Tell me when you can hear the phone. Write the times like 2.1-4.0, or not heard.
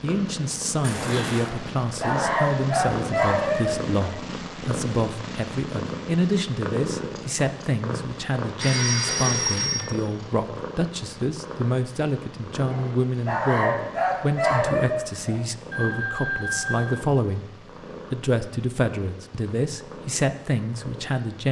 0.8-1.5, 8.4-9.8, 15.7-17.1.